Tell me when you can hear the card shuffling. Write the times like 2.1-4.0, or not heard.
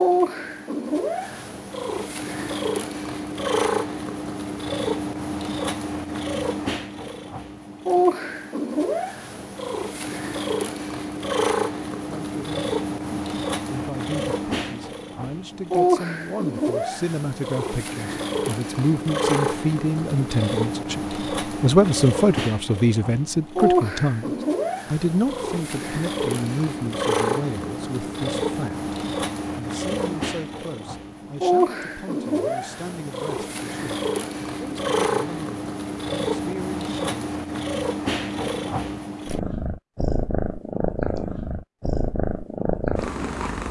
not heard.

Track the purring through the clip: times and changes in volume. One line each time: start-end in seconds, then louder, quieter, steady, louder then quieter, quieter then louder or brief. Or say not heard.
0.0-43.6 steady.